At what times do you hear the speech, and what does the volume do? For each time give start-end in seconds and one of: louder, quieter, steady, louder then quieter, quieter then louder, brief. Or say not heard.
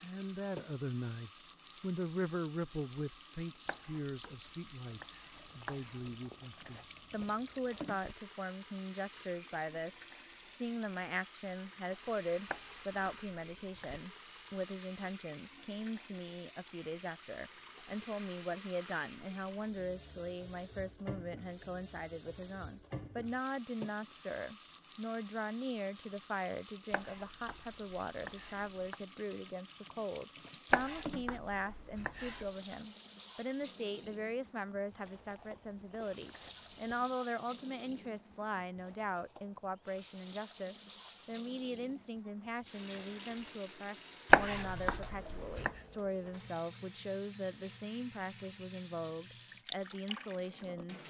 0.0-51.0 steady.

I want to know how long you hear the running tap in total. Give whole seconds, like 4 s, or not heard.
51 s.